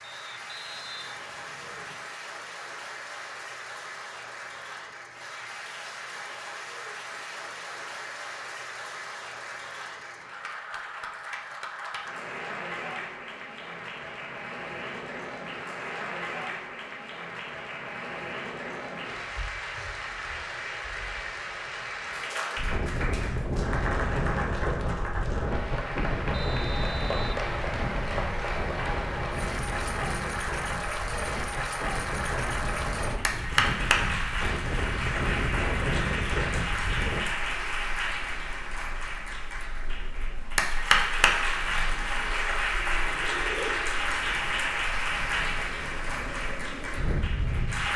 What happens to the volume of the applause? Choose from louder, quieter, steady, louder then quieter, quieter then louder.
louder.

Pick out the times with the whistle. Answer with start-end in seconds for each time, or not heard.
0.0-2.0, 26.3-27.4.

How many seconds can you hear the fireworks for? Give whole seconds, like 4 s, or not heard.
not heard.